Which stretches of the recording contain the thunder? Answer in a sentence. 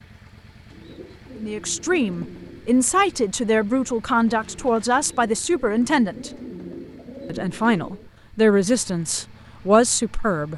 You can't hear the thunder here.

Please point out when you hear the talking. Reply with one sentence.
You can hear the talking from 1.4 to 6.3 s and from 7.2 to 10.5 s.